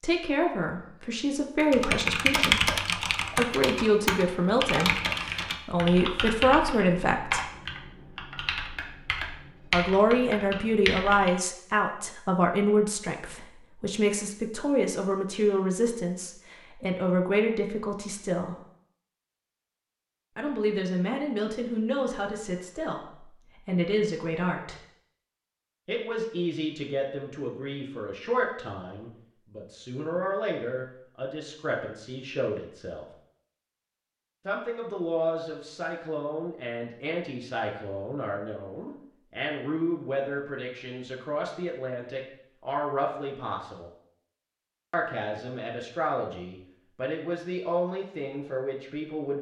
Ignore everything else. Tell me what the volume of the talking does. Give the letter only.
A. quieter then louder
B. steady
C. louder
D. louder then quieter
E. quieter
E.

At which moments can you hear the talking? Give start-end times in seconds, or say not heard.
0.0-7.5, 9.7-18.6, 20.4-24.8, 25.9-33.0, 34.5-43.9, 44.9-49.3.